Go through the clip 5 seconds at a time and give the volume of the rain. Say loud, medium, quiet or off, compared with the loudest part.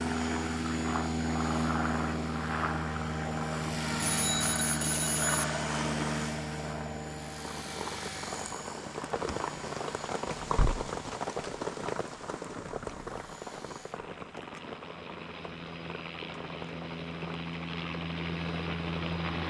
off, loud, loud, medium.